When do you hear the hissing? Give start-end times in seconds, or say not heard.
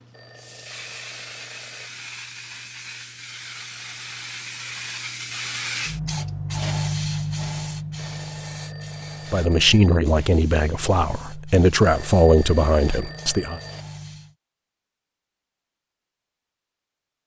0.0-14.3.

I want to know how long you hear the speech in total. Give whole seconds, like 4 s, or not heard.
4 s.